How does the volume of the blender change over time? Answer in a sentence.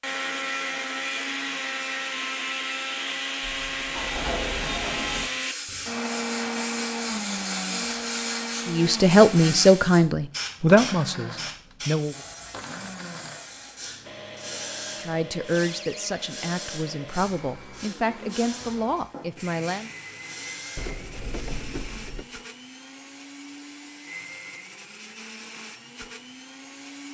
The loudness of the blender goes down.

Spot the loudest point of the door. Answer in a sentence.
The loudest moment of the door is at 4 seconds.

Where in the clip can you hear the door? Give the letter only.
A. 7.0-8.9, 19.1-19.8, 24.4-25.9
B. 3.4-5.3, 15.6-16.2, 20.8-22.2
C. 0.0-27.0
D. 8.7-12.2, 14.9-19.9
B.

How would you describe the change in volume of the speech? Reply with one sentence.
The volume of the speech goes down.